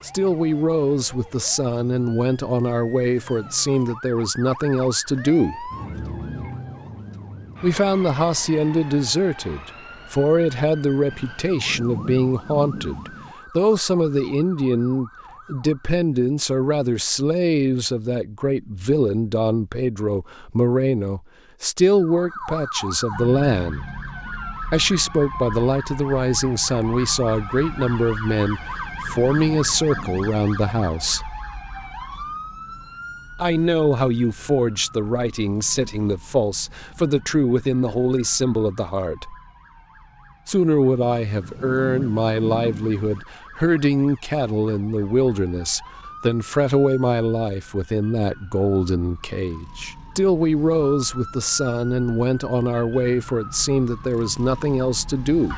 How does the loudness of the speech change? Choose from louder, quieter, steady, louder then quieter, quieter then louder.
steady.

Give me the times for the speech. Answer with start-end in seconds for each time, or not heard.
0.0-5.7, 7.6-23.9, 24.7-31.4, 33.4-39.4, 40.5-55.5.